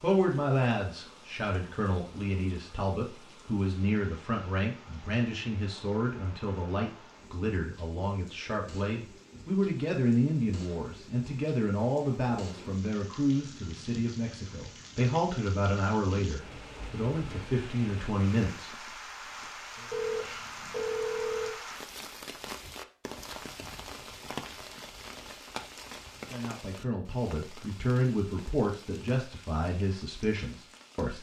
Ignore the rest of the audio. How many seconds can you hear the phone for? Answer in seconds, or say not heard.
2 s.